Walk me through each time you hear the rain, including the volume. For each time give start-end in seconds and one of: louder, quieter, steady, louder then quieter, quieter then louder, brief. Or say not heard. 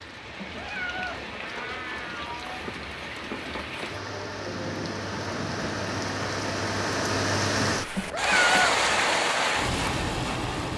0.0-10.7 louder.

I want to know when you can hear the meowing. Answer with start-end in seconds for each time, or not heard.
0.3-3.0, 8.0-9.0.